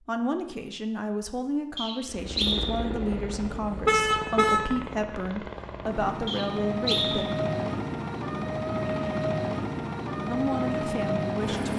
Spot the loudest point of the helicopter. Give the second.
9 s.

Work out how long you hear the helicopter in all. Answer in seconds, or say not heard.
10 s.